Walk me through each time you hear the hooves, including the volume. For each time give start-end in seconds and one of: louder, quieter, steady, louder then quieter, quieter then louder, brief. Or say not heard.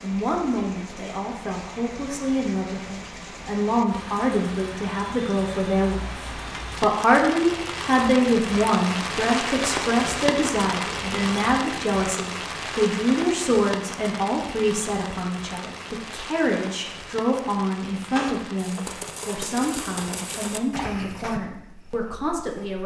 18.1-22.8 quieter.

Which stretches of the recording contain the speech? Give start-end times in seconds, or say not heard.
0.0-22.8.